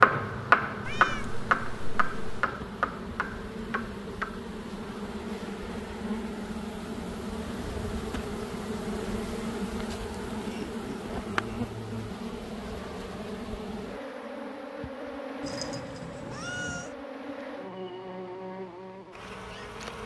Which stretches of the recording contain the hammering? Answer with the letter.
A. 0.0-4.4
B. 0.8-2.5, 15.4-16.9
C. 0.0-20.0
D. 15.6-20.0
A.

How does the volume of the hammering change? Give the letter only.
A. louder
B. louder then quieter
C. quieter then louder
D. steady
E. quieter
E.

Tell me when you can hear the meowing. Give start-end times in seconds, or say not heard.
0.8-2.5, 15.4-16.9.